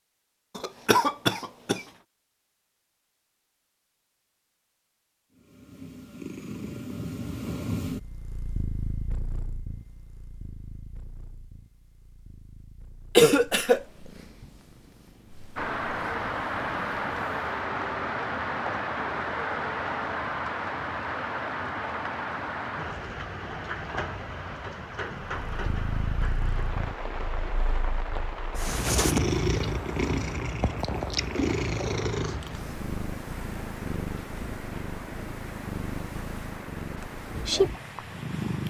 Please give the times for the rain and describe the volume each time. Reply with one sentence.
You can hear the rain from 15.6 to 38.6 s, getting quieter.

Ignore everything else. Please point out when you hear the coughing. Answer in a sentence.
You can hear the coughing from 0.6 to 1.8 s, from 13.2 to 13.8 s and from 28.5 to 29.2 s.